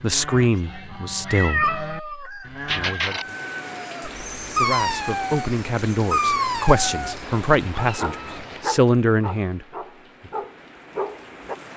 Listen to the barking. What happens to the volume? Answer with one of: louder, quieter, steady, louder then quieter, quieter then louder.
quieter.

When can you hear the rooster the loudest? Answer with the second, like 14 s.
3 s.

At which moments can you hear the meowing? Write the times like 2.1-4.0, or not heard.
1.2-3.2, 7.2-8.8.